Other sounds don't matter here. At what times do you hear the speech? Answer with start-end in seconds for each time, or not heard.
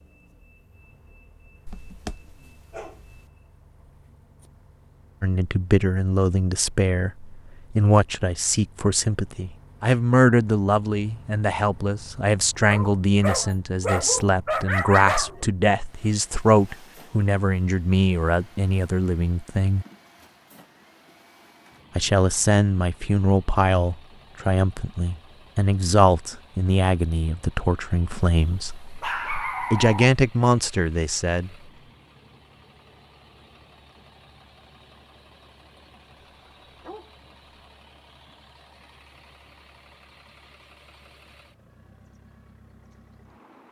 5.2-19.9, 21.9-28.7, 29.7-31.5.